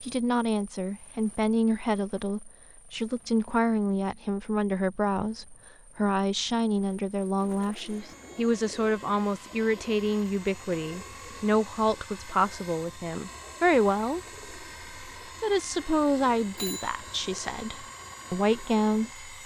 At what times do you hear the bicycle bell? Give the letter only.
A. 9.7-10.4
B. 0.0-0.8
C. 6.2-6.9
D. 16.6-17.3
D.